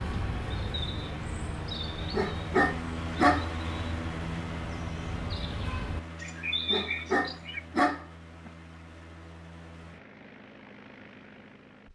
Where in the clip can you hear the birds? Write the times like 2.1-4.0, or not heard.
0.0-7.6.